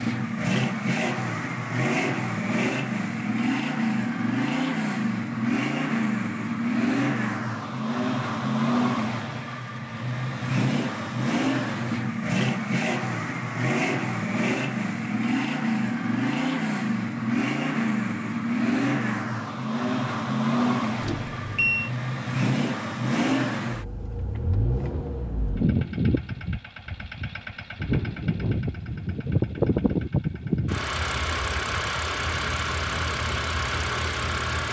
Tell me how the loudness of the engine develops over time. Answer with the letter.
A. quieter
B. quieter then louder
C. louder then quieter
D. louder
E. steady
E.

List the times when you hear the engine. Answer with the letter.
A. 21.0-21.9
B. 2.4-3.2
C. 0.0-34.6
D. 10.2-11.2
C.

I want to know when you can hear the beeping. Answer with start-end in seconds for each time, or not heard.
21.0-21.9.